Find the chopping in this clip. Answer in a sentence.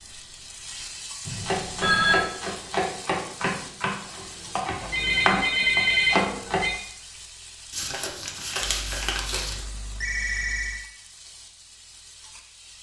You can hear the chopping from 1.4 to 6.7 s.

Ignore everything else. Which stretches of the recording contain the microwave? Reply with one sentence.
You can't hear the microwave here.